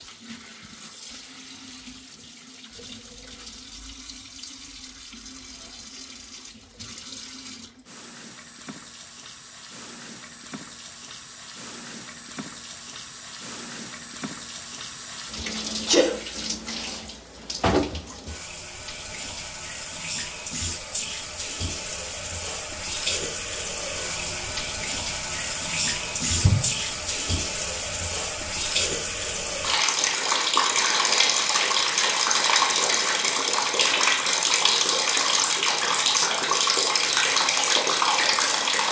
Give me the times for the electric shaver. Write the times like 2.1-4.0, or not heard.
not heard.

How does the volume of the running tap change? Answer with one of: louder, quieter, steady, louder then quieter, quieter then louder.
louder.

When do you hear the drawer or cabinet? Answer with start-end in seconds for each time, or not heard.
not heard.